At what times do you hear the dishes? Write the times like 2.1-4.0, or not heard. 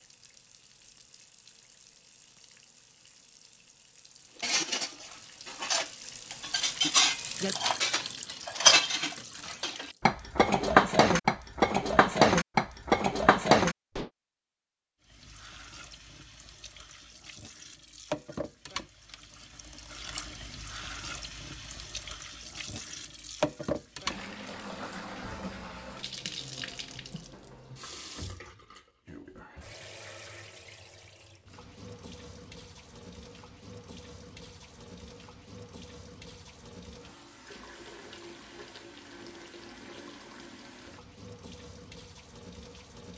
4.4-14.1.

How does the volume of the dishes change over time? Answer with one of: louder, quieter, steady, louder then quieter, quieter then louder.
louder.